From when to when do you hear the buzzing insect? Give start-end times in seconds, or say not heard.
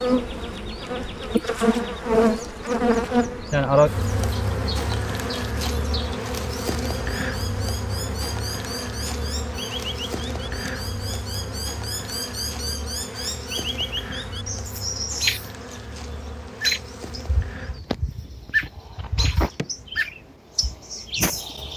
0.0-21.7.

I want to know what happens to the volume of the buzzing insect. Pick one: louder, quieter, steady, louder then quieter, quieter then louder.
quieter.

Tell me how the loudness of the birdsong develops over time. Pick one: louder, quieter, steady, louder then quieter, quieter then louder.
louder.